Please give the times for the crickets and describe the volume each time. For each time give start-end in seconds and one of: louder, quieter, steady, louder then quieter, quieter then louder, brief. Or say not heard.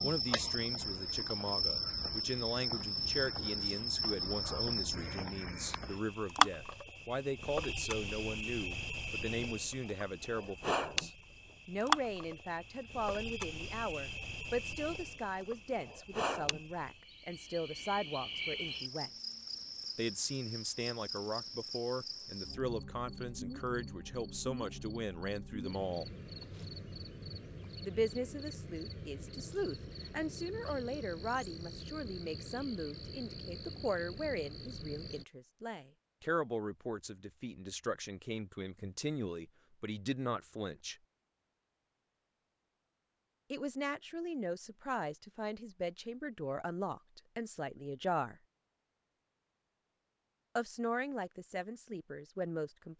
0.0-35.2 quieter.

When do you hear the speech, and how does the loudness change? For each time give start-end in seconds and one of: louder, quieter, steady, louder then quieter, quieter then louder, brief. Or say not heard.
0.0-19.1 steady
19.9-26.1 steady
27.8-41.0 steady
43.5-48.4 steady
50.5-52.9 brief.